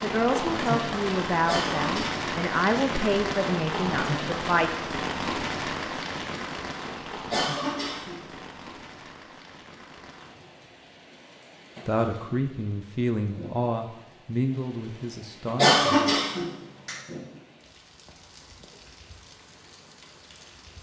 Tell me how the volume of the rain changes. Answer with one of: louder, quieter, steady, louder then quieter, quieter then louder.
quieter.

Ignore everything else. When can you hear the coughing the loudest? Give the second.
16 s.